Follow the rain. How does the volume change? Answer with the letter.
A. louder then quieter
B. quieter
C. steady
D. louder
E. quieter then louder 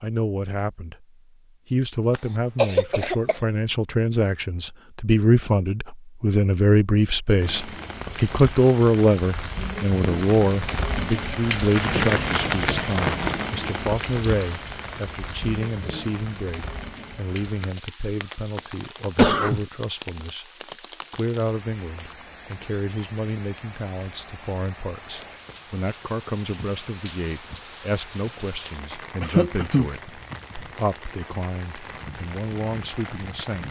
B.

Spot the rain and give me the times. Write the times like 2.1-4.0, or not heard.
7.4-33.6.